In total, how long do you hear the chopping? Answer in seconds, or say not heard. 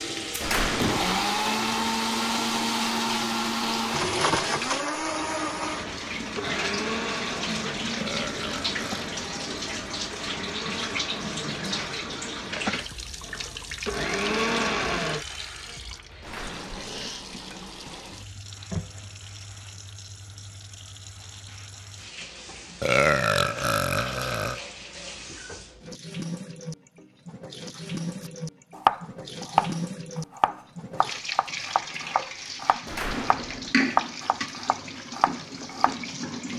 8 s.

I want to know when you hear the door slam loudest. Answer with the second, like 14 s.
1 s.